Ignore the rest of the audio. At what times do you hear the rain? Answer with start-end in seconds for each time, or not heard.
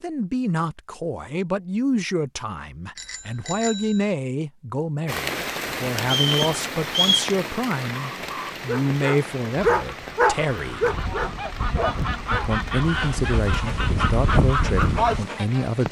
5.0-15.8.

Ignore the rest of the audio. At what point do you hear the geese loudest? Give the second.
15 s.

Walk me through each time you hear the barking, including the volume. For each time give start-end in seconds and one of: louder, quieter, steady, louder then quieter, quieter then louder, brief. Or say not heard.
8.2-15.4 quieter.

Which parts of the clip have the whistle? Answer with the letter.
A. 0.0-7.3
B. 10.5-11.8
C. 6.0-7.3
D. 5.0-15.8
C.